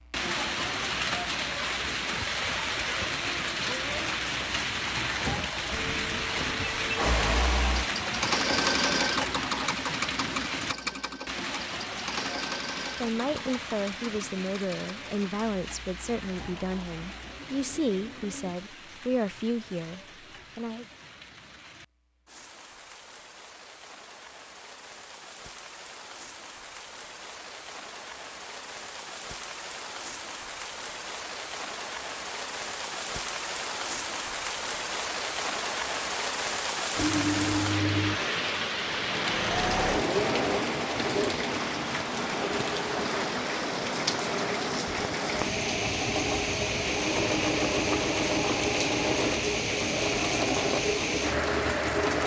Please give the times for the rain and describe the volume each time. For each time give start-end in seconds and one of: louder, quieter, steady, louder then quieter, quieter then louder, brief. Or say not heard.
0.0-52.2 quieter then louder.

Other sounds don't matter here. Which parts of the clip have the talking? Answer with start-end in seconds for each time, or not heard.
13.0-20.9.